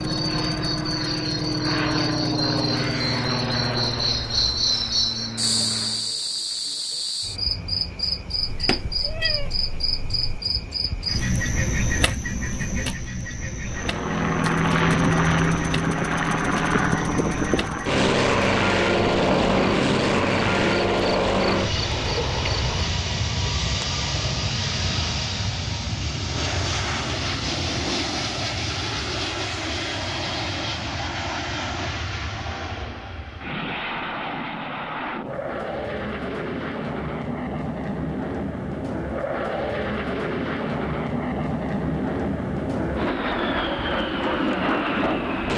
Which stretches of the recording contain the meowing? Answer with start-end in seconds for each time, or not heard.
8.3-10.4.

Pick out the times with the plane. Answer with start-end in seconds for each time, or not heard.
0.0-6.2, 13.7-45.5.